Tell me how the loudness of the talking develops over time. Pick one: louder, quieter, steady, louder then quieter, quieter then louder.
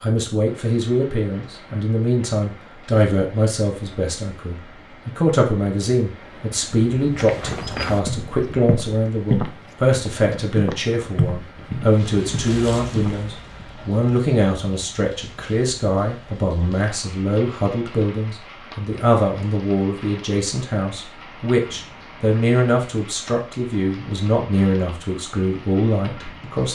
steady.